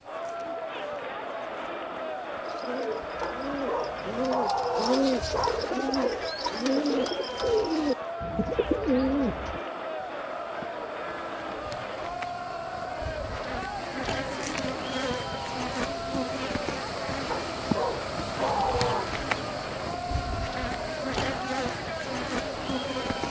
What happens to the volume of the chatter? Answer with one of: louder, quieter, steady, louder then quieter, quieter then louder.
steady.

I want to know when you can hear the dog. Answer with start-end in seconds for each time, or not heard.
3.2-6.1, 17.3-19.1.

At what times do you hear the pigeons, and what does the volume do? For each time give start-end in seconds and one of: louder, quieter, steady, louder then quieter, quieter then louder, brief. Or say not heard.
2.5-9.6 louder.